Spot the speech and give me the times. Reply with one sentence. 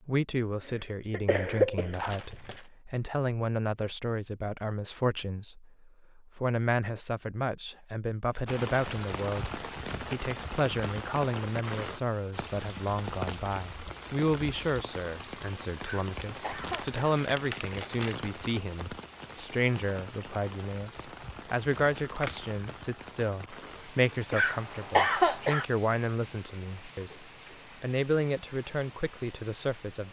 You can hear the speech from 0.1 to 30.0 s.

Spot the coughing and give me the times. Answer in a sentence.
The coughing can be heard from 0.7 to 2.0 s, from 15.8 to 17.1 s and from 24.3 to 25.6 s.